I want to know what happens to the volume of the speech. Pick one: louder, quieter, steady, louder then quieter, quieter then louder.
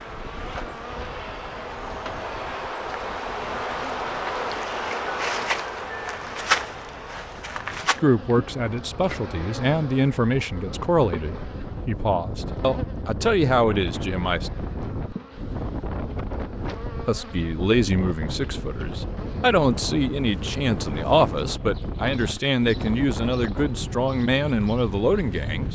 steady.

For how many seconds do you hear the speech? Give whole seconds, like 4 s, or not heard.
15 s.